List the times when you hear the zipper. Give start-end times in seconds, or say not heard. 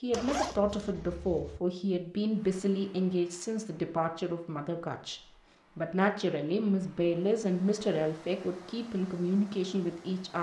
0.1-1.6.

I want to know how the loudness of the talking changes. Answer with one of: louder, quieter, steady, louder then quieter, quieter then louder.
steady.